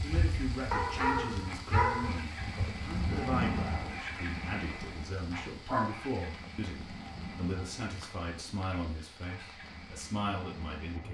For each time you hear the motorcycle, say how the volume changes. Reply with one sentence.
You can hear the motorcycle from 0.0 to 11.0 s, getting louder then quieter.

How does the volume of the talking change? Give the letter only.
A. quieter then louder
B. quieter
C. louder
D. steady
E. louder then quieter
D.